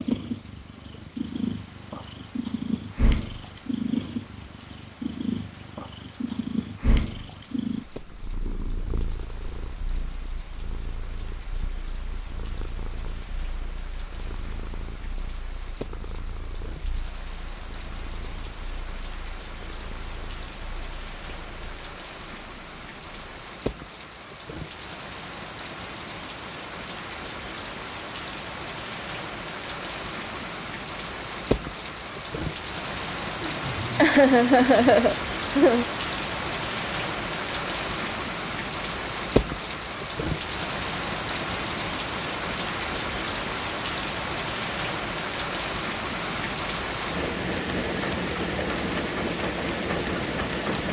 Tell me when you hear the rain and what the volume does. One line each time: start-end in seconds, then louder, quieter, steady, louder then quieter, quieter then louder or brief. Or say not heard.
0.0-50.8 louder.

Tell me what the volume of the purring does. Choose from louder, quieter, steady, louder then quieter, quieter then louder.
quieter.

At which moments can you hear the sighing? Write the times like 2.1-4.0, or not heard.
33.4-35.9.